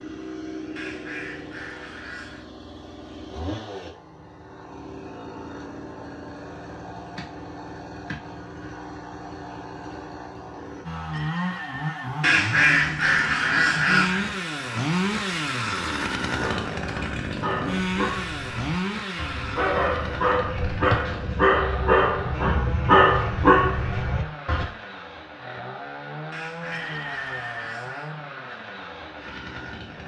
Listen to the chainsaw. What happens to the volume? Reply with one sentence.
The loudness of the chainsaw goes up, then down.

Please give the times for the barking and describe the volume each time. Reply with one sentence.
The barking can be heard from 16.3 to 24.6 s, getting louder.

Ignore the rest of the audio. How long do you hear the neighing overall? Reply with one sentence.
You can hear the neighing for 2 seconds altogether.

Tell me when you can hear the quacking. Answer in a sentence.
You can hear the quacking from 0.8 to 2.5 s, from 12.2 to 14.2 s and from 26.3 to 28.1 s.